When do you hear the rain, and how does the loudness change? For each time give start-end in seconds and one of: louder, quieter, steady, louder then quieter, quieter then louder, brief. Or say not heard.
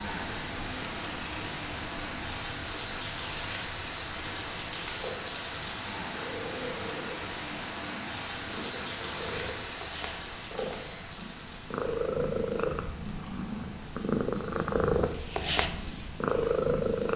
0.0-17.1 quieter.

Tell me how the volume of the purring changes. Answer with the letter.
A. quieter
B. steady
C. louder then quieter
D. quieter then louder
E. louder
E.